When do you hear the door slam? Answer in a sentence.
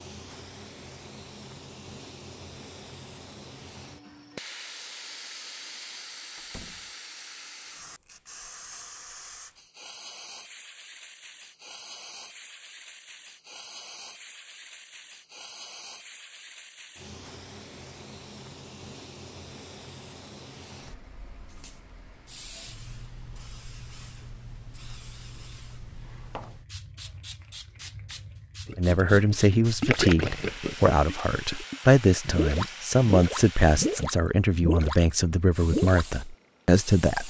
You can hear the door slam from 6.3 to 6.9 s.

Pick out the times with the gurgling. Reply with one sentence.
You can hear the gurgling from 28.6 to 36.1 s.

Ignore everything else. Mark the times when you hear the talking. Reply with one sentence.
The talking can be heard from 28.8 to 37.2 s.